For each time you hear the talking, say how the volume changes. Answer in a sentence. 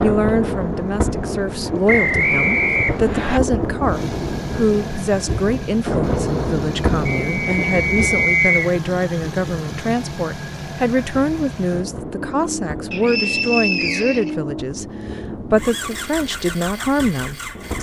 The talking can be heard from 0.0 to 17.7 s, at a steady volume.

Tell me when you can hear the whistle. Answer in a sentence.
The whistle can be heard from 1.9 to 3.4 s, from 7.0 to 8.7 s and from 12.9 to 14.3 s.